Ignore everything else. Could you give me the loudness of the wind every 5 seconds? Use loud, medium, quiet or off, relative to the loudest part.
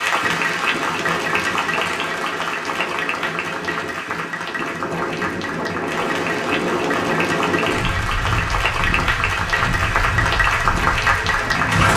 medium, loud, loud.